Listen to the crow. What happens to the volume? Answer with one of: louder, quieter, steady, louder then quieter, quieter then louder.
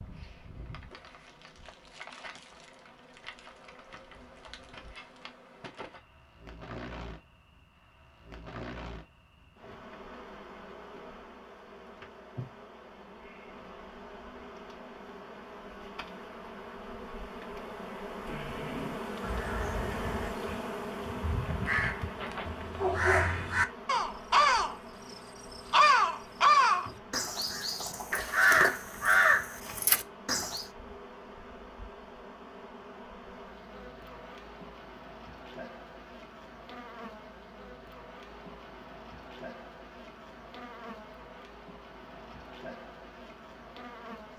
louder.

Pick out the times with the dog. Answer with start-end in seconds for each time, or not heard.
22.1-23.4.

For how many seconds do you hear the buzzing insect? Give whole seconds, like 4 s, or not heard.
44 s.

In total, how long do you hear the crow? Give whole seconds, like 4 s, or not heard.
12 s.